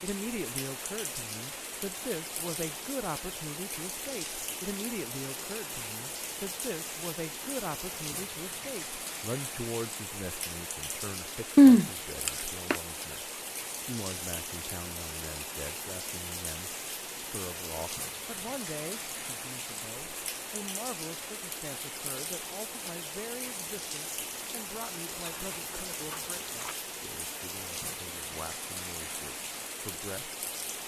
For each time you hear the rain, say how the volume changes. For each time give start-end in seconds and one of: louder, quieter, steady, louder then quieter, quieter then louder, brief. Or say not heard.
0.0-30.8 steady.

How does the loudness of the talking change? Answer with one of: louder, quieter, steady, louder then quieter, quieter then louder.
quieter.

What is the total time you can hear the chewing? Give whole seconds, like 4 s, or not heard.
3 s.